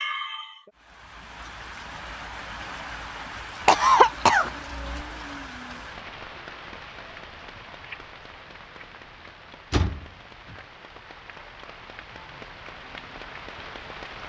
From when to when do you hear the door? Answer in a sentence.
You can hear the door from 9.7 to 10.6 s.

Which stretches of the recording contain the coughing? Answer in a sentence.
You can hear the coughing from 3.6 to 5.0 s.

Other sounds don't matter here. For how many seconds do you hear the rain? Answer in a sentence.
The rain can be heard for 14 seconds in total.